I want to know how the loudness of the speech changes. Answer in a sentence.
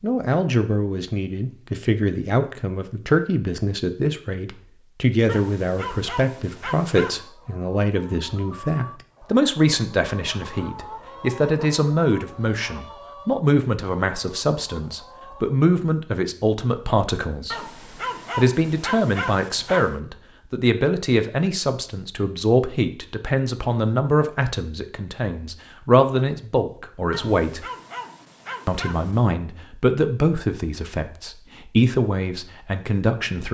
The loudness of the speech stays about the same.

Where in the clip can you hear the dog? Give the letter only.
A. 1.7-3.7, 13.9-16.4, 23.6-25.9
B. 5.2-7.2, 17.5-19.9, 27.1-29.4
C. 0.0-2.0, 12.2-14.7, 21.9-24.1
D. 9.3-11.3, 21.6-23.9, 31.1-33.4
B.